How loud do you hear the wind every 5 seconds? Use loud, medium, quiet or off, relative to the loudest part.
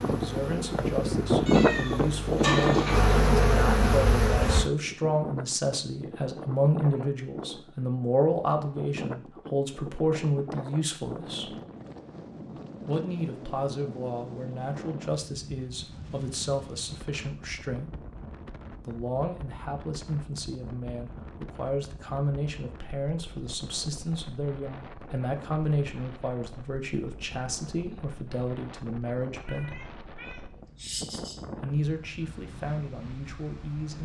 loud, quiet, quiet, quiet, quiet, quiet, quiet.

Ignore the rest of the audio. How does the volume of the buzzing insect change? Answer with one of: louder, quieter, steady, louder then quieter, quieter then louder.
louder.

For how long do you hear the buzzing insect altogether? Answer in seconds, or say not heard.
5 s.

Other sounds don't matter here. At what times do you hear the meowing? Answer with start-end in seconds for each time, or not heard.
1.4-3.1, 29.4-31.4.